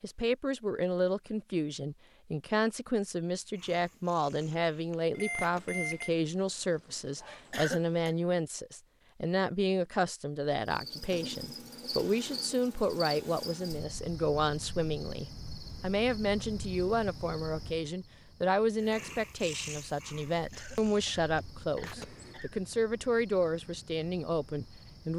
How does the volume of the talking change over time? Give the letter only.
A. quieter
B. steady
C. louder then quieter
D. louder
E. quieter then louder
B.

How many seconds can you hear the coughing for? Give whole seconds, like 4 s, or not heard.
3 s.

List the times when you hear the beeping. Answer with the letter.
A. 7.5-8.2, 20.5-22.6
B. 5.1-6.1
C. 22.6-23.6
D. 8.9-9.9
B.